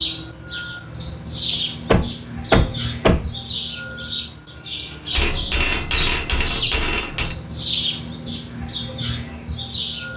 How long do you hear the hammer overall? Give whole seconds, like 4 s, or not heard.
2 s.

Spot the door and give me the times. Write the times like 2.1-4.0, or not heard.
1.9-3.3.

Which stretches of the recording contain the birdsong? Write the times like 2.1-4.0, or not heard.
0.0-10.1.